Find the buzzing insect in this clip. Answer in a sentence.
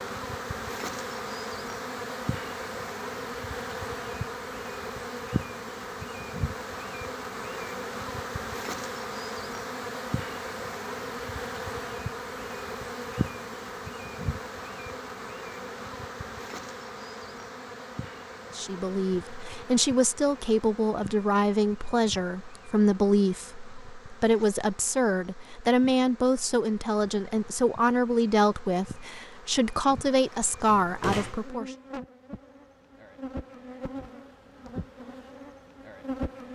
The buzzing insect can be heard from 0.0 to 36.4 s.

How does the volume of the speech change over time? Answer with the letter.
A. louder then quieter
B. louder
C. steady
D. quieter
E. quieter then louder
C.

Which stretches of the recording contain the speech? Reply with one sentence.
The speech can be heard from 18.6 to 31.7 s.